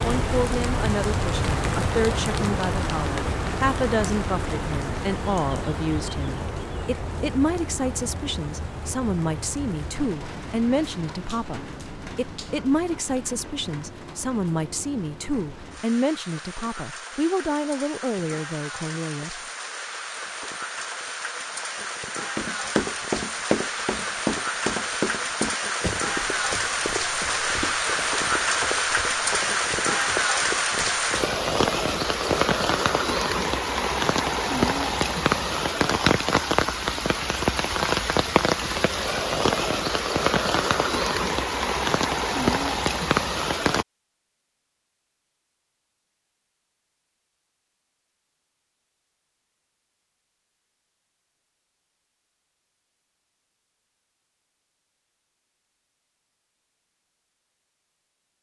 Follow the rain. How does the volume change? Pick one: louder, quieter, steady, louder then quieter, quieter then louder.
quieter then louder.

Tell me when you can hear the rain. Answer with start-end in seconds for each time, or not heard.
0.0-43.9.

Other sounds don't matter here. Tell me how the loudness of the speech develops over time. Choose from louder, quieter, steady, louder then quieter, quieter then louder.
steady.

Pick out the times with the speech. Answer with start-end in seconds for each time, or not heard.
0.0-19.4.